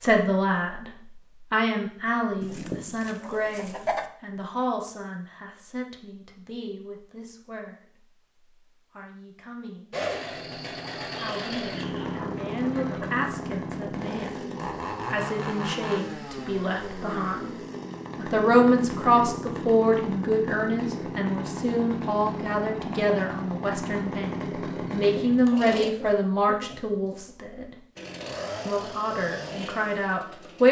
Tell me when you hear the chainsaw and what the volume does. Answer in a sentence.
You can hear the chainsaw from 9.9 to 25.9 s, at a steady volume; and briefly from 27.9 to 30.6 s.